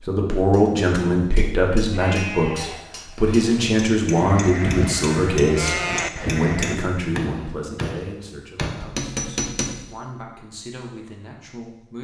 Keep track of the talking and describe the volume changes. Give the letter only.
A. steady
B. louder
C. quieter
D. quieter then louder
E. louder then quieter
C.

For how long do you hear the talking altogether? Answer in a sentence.
You can hear the talking for 12 seconds altogether.